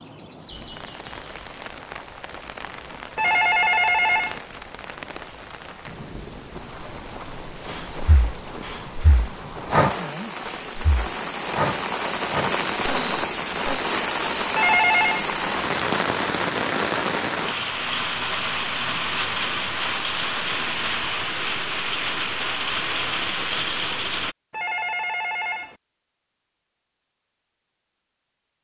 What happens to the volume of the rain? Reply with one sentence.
The loudness of the rain goes up.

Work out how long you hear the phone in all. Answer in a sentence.
The phone can be heard for 3 seconds in total.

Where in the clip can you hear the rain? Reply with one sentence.
You can hear the rain from 0.0 to 24.4 s.